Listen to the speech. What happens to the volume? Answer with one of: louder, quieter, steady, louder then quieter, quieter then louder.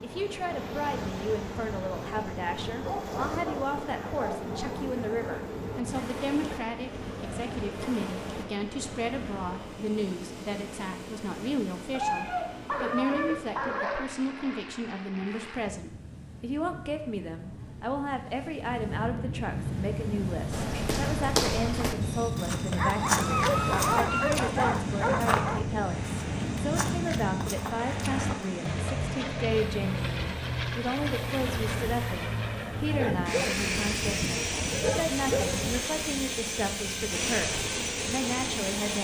steady.